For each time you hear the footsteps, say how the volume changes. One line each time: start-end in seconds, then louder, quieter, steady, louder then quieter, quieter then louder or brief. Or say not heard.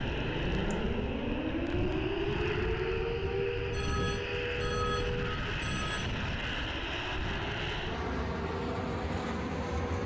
not heard.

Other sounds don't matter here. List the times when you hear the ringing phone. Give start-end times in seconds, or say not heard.
3.7-6.2.